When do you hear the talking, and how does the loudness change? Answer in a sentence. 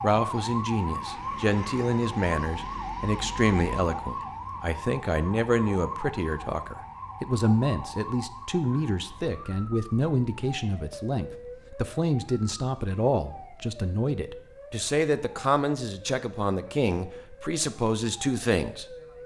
You can hear the talking from 0.0 to 19.2 s, at a steady volume.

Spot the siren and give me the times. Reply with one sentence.
You can hear the siren from 0.0 to 19.2 s.